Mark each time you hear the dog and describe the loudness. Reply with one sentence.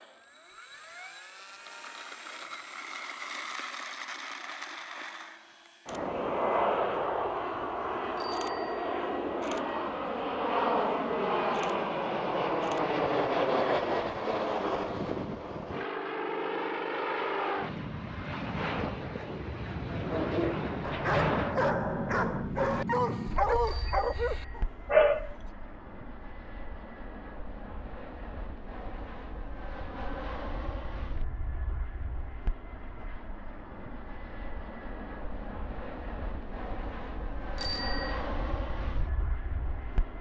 The dog can be heard from 19.9 to 25.4 s, at a steady volume.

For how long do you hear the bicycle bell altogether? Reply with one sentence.
You can hear the bicycle bell for 2 seconds altogether.